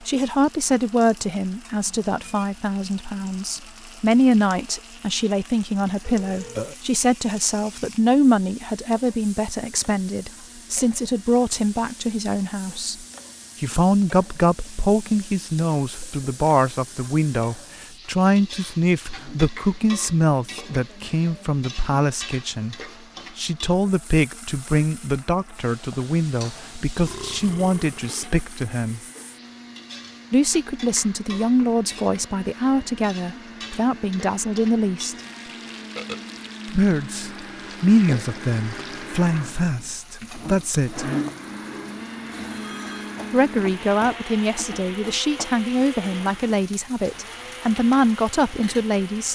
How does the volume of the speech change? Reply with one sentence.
The volume of the speech stays about the same.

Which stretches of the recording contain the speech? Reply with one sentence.
You can hear the speech from 0.1 to 22.8 s, from 23.4 to 29.0 s, from 30.3 to 35.1 s, from 36.6 to 41.1 s and from 43.3 to 49.3 s.